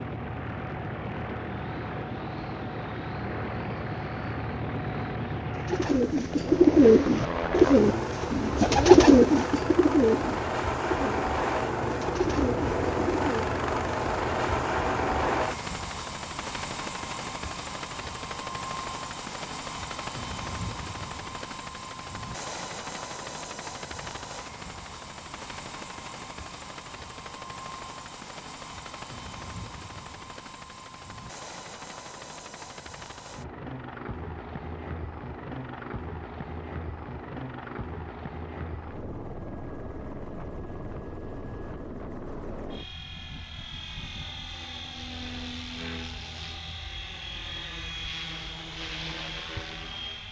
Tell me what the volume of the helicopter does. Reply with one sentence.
The loudness of the helicopter goes down.